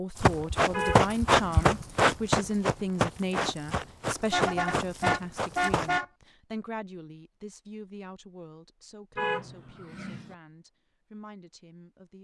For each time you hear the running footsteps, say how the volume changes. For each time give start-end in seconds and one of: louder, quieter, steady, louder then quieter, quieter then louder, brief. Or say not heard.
0.2-6.0 quieter.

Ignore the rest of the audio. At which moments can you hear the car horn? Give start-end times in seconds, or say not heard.
0.7-1.6, 4.2-6.0, 9.2-10.3.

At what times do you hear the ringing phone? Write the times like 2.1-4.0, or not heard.
not heard.